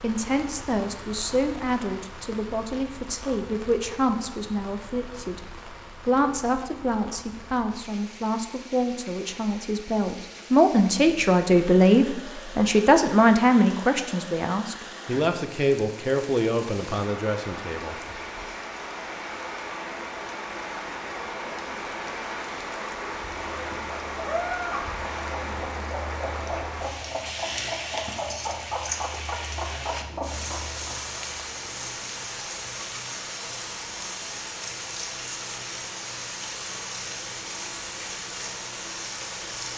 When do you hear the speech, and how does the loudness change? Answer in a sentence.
You can hear the speech from 0.0 to 17.9 s, getting louder then quieter.